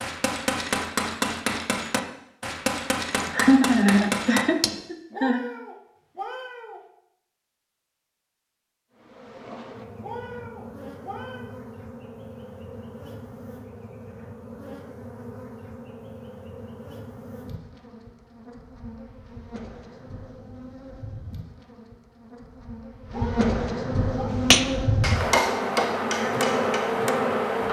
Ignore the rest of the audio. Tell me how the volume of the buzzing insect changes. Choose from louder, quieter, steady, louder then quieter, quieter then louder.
louder.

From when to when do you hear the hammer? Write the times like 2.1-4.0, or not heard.
0.0-4.7, 24.5-27.6.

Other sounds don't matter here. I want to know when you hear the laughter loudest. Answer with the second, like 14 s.
4 s.